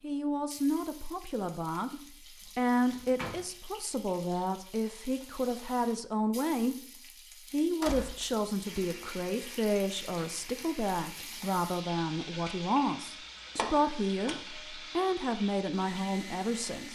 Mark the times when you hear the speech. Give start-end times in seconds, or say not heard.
0.0-6.8, 7.5-16.9.